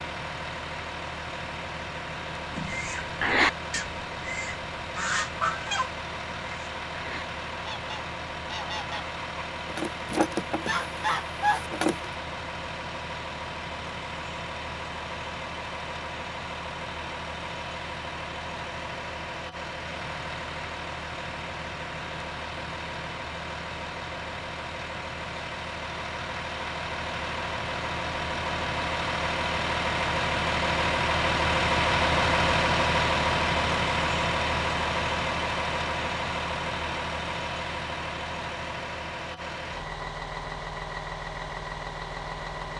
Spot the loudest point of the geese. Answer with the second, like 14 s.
3 s.